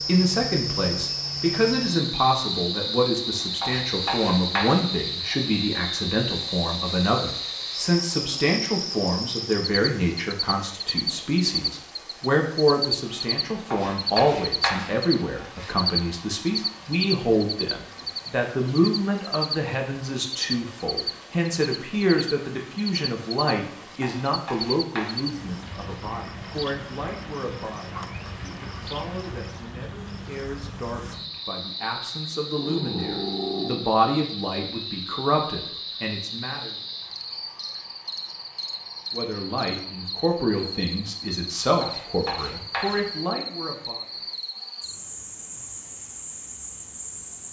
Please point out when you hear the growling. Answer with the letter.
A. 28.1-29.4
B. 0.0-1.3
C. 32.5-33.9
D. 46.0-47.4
C.